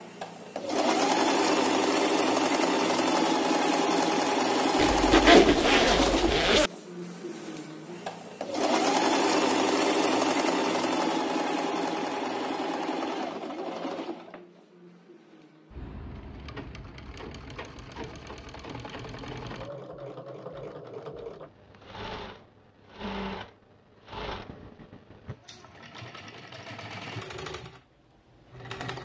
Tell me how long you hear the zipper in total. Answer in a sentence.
The zipper can be heard for 2 seconds in total.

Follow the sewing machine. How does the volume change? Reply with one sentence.
The volume of the sewing machine goes down.